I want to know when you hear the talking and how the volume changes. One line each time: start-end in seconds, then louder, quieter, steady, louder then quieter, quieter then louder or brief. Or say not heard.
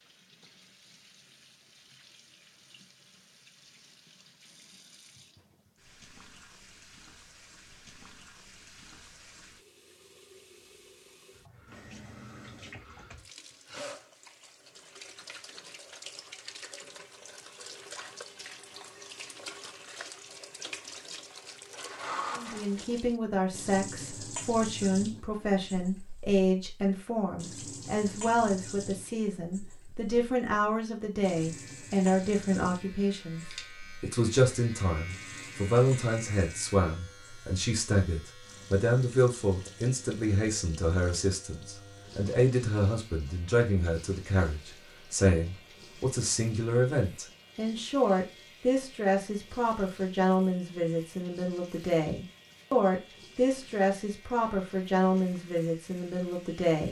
22.3-56.8 steady.